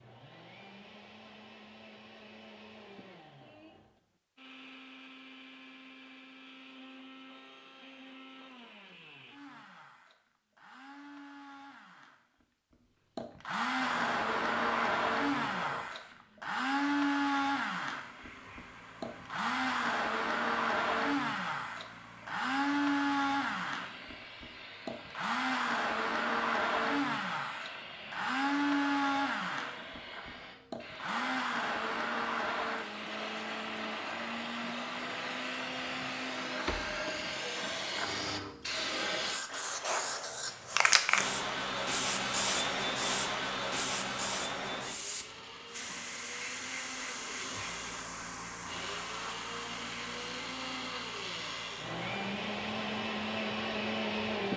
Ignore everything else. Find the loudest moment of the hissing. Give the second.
41 s.